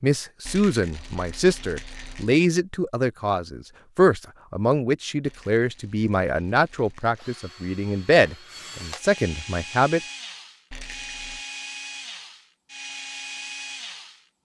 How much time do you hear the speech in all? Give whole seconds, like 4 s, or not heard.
10 s.